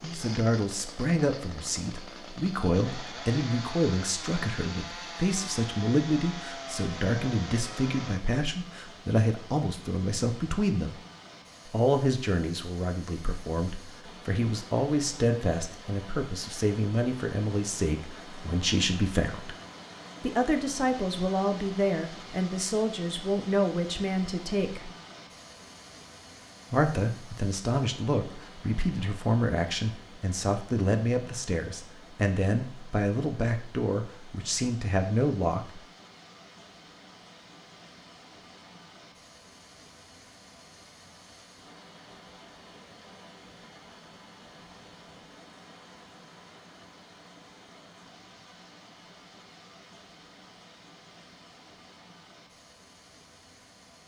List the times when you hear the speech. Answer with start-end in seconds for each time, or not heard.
0.0-10.9, 11.7-19.6, 20.2-24.9, 26.7-35.8.